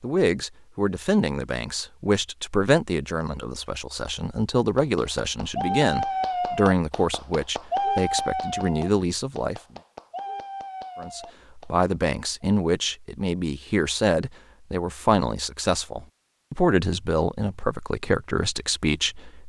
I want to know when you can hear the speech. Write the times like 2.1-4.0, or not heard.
0.0-9.6, 10.9-19.4.